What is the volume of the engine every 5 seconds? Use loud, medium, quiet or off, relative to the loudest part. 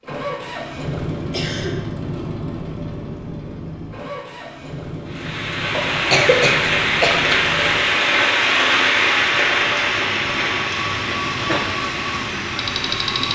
loud, medium, loud.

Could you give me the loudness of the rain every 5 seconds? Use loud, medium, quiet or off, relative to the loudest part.
off, loud, medium.